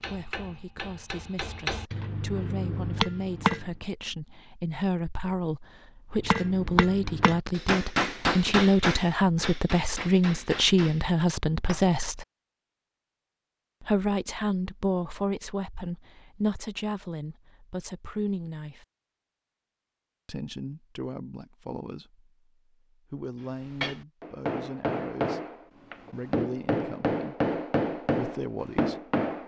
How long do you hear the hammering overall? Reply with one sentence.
You can hear the hammering for 15 seconds altogether.